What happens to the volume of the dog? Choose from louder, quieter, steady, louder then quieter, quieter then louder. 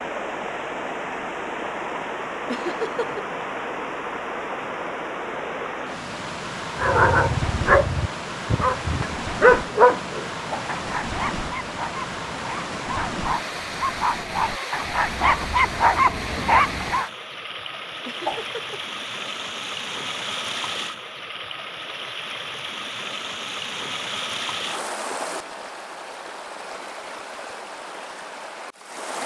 quieter then louder.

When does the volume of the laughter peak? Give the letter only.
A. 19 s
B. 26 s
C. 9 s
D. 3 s
D.